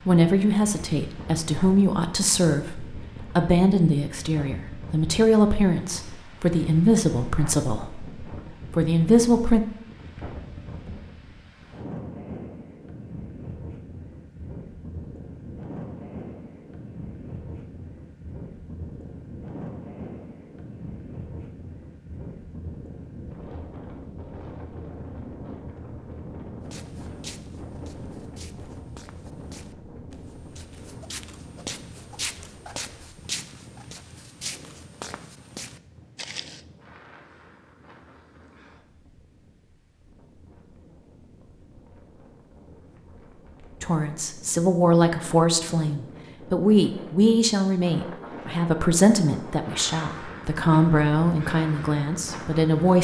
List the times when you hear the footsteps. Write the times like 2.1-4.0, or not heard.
26.6-36.6.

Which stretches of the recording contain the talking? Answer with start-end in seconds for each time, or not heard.
0.1-9.6, 43.8-52.9.